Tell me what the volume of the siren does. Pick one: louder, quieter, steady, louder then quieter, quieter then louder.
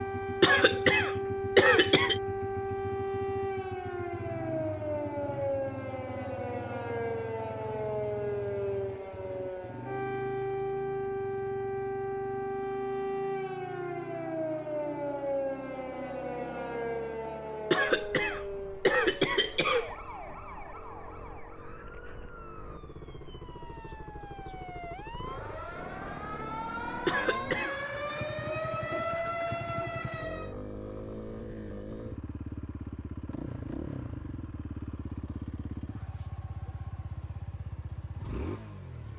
quieter then louder.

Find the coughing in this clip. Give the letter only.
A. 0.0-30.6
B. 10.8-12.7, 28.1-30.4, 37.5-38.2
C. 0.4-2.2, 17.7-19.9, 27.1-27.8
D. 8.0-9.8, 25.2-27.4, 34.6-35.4
C.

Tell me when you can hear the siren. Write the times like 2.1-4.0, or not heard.
0.0-30.6.